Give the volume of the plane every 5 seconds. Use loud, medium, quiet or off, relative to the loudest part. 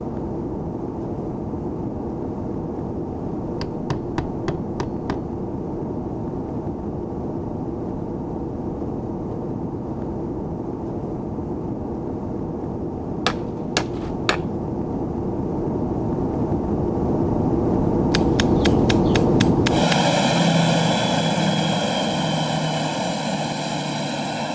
medium, medium, medium, loud, loud.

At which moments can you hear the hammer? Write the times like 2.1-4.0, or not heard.
3.4-5.3, 13.2-14.4, 18.1-20.0.